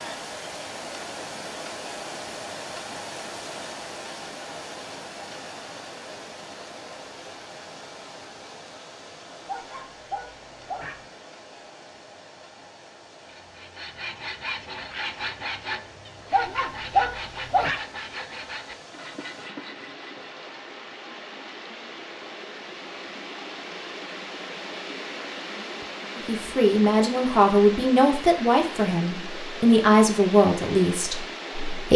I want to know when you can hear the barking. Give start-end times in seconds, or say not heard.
9.4-11.1, 16.3-17.8.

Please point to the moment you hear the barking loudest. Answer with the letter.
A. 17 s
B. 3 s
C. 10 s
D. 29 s
A.